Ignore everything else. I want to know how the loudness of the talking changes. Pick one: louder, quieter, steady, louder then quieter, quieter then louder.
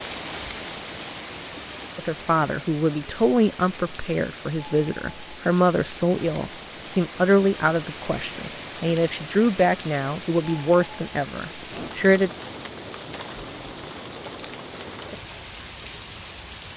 steady.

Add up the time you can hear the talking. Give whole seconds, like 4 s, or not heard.
10 s.